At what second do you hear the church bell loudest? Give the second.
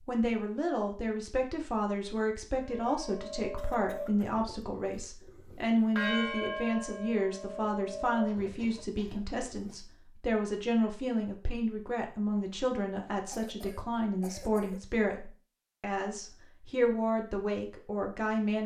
6 s.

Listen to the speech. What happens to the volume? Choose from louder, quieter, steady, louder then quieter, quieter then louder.
steady.